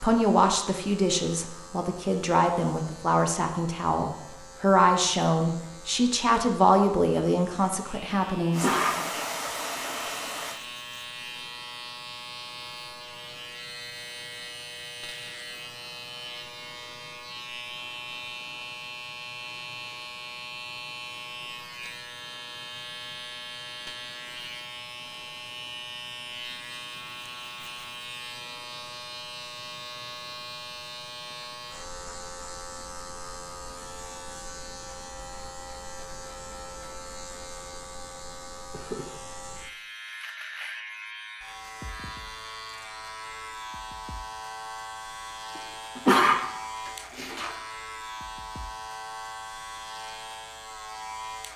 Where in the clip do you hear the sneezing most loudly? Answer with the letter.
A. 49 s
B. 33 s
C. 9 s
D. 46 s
D.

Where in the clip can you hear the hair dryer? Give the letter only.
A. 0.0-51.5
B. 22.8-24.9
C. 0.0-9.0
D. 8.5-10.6
D.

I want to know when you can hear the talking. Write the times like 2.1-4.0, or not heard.
0.0-9.0.